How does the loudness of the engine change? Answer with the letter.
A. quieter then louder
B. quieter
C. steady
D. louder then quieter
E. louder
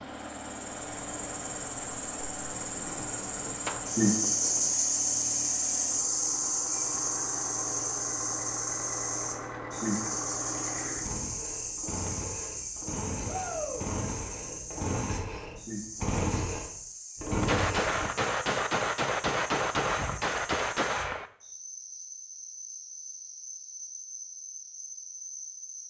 E.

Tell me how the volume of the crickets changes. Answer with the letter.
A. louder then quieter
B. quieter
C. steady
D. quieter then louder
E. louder
B.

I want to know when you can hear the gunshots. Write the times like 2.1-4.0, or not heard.
2.8-4.8, 17.4-21.3.